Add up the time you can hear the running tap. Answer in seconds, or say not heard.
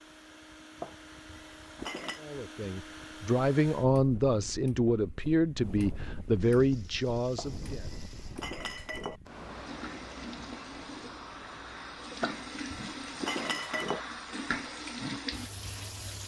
10 s.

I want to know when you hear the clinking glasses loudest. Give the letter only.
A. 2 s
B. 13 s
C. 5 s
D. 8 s
B.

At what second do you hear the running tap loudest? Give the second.
15 s.